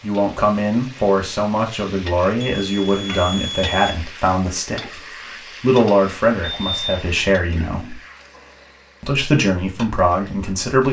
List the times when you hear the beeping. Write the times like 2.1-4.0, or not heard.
2.4-4.0, 6.4-7.3.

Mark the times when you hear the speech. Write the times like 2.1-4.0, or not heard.
0.0-5.0, 5.6-8.0, 9.0-10.8.